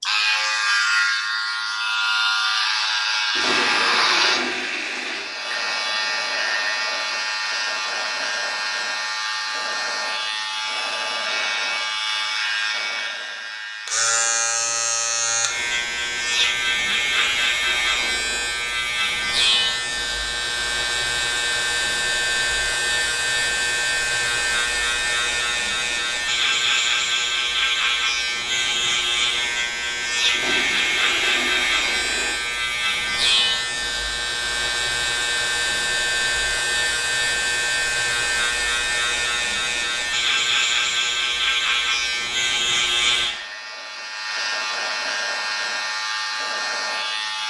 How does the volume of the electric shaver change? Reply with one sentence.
The volume of the electric shaver stays about the same.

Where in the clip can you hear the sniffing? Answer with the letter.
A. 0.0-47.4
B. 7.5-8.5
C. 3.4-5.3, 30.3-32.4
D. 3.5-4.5
D.